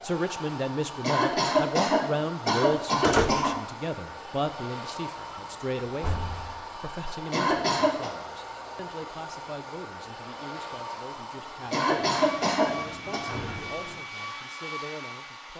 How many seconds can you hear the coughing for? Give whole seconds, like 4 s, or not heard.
5 s.